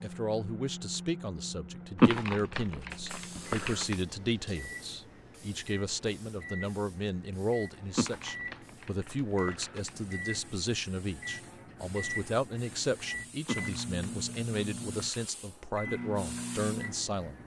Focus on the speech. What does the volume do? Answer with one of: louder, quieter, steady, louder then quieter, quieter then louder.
steady.